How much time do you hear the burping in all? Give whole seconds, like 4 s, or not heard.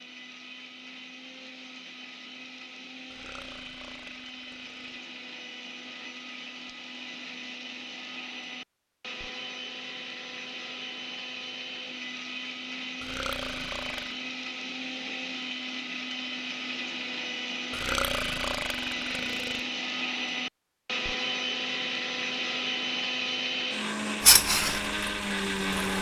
5 s.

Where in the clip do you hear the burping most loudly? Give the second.
18 s.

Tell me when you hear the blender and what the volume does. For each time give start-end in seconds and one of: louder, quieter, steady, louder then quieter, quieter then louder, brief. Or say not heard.
0.0-25.9 louder.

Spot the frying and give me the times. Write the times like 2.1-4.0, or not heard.
24.2-25.9.